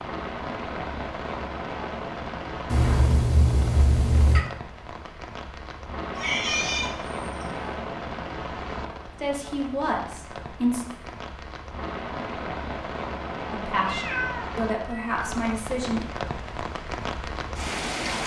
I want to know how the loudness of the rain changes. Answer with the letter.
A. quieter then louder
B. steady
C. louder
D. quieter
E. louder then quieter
B.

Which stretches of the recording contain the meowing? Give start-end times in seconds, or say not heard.
2.6-4.5, 6.2-7.7, 13.8-15.3.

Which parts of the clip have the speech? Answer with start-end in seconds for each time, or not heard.
9.2-10.8, 13.5-16.1.